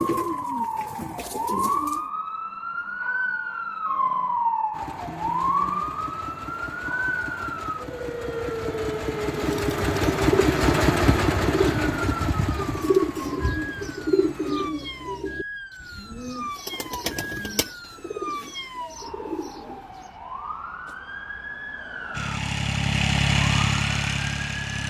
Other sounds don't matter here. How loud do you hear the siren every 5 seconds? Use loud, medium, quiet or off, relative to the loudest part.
loud, loud, medium, medium, medium.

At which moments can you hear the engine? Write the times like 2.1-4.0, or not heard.
4.7-14.7, 22.1-24.8.